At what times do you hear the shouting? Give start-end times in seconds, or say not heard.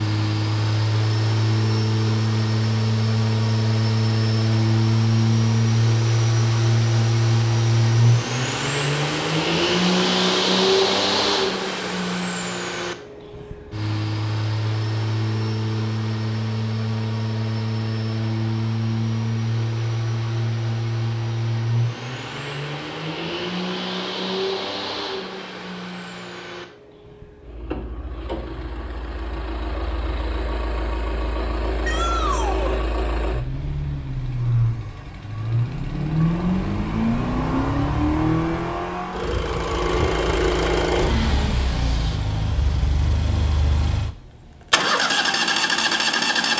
31.8-32.8.